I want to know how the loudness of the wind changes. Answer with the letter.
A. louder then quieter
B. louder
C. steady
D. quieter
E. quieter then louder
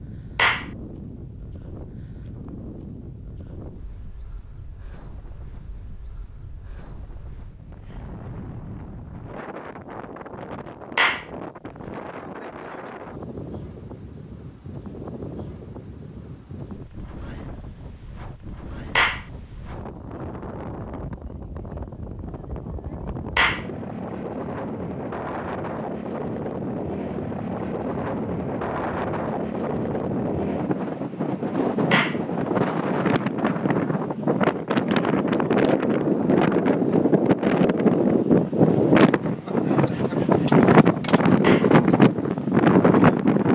B.